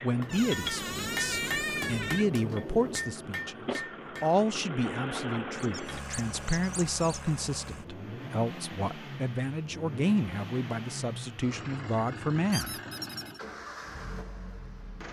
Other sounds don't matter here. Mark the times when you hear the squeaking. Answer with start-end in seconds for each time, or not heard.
0.2-2.2, 5.5-7.2, 12.5-13.4.